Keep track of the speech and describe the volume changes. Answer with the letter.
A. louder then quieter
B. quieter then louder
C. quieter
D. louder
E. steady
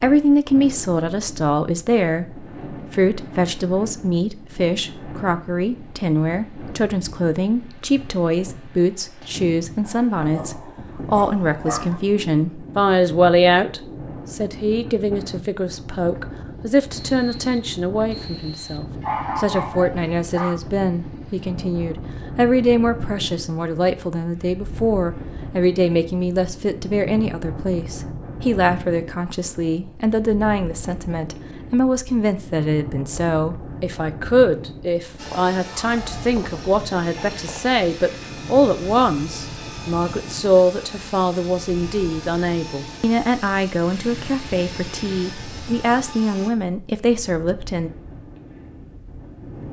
E.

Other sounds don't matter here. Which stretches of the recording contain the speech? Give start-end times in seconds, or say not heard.
0.0-47.9.